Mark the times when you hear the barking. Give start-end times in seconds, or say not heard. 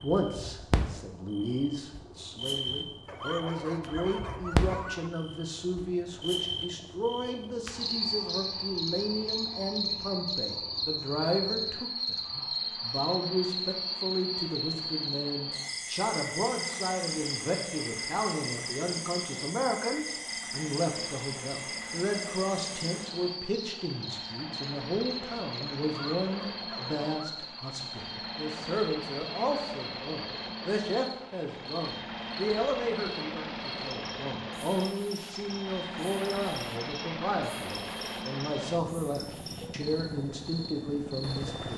3.0-5.1, 25.9-27.5.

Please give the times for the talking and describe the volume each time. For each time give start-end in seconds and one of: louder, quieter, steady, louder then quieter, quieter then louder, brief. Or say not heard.
0.0-41.7 steady.